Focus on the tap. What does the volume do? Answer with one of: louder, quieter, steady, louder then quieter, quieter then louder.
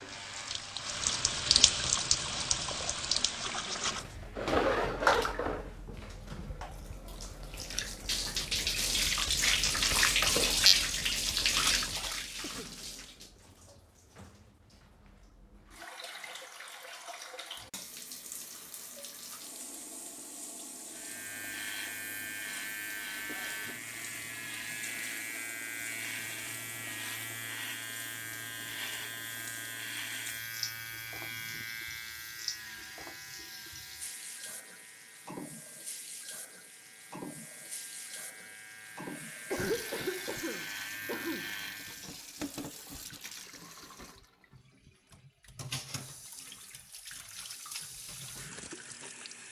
quieter.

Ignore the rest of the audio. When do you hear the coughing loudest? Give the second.
40 s.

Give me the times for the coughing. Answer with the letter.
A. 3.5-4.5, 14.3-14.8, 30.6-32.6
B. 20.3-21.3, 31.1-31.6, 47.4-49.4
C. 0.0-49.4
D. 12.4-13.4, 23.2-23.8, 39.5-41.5
D.